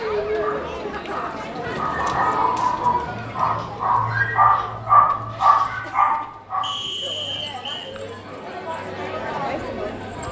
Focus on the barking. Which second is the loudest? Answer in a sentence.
The volume of the barking peaks at 5 seconds.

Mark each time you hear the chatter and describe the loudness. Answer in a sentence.
The chatter can be heard from 0.0 to 10.2 s, getting quieter then louder.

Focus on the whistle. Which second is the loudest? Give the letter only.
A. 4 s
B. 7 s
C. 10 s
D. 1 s
B.